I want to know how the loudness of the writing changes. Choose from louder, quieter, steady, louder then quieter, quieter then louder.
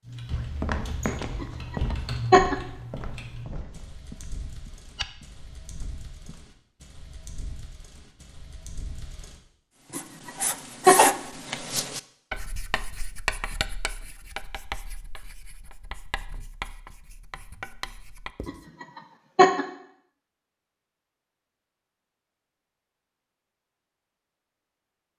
quieter.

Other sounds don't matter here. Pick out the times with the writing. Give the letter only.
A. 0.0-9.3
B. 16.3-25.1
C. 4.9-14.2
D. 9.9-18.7
D.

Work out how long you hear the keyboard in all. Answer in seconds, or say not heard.
9 s.